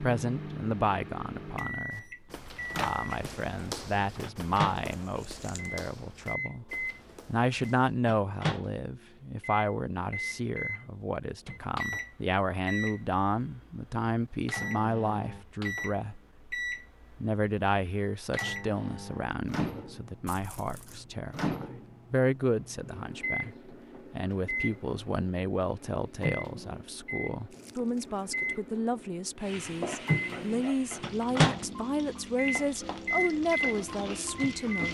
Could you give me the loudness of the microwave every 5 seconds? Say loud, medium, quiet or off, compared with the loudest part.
medium, medium, medium, medium, medium, medium, loud.